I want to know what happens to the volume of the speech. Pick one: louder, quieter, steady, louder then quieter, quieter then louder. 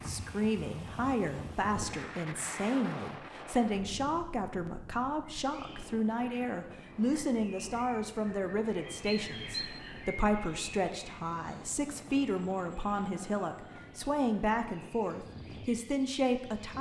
steady.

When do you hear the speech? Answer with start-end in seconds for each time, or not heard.
0.0-16.7.